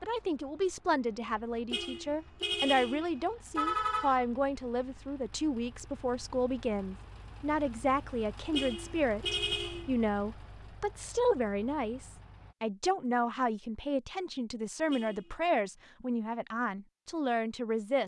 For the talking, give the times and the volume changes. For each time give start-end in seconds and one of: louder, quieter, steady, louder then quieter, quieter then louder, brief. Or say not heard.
0.0-18.0 steady.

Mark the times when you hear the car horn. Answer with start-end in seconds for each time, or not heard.
1.7-4.2, 8.5-9.9, 14.9-15.4.